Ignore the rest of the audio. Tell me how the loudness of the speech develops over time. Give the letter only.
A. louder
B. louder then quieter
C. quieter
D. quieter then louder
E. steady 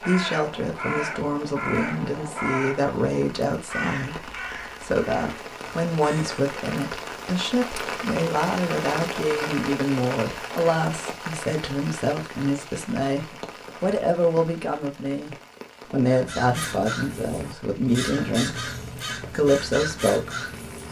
E.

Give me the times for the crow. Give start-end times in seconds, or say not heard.
0.0-6.3, 16.1-20.8.